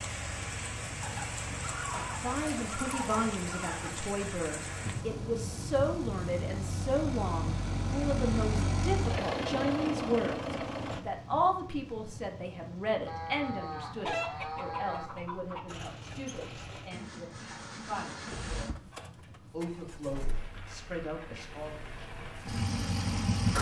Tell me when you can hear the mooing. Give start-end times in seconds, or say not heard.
13.1-15.1.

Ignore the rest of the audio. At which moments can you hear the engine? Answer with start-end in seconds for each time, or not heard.
0.0-11.0, 15.7-23.5.